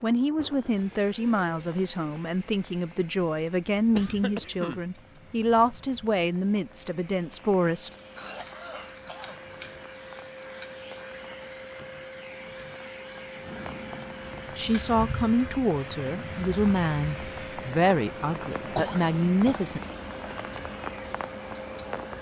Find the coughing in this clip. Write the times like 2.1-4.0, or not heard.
4.0-4.8, 8.2-9.8, 18.8-19.7.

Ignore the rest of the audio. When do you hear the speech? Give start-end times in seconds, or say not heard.
0.0-7.9, 14.6-19.8.